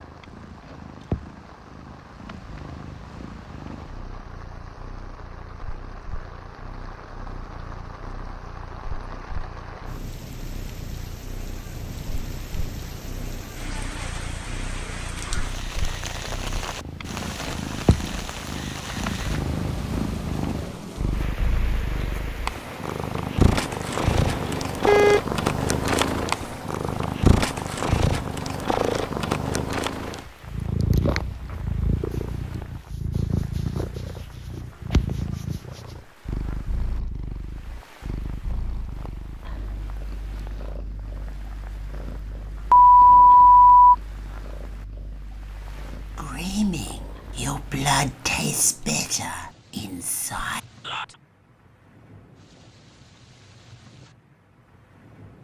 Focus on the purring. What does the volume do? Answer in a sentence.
The volume of the purring goes up, then down.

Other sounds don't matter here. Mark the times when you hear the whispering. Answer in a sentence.
The whispering can be heard from 46.1 to 51.1 s.